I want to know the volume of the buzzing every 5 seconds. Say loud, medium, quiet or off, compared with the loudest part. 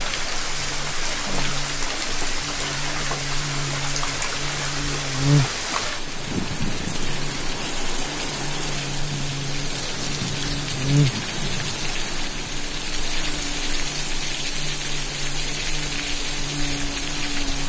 medium, loud, loud, medium.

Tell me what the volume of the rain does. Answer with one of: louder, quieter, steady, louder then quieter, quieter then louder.
steady.